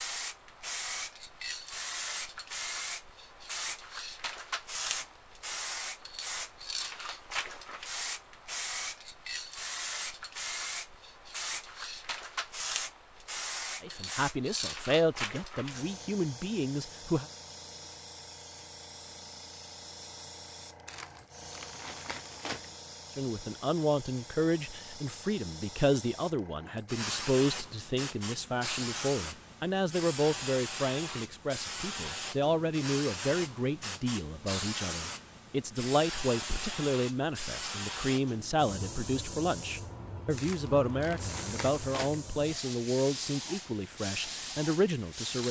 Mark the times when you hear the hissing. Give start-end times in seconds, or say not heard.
0.0-45.4.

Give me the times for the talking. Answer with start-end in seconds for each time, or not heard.
13.8-17.2, 23.1-45.4.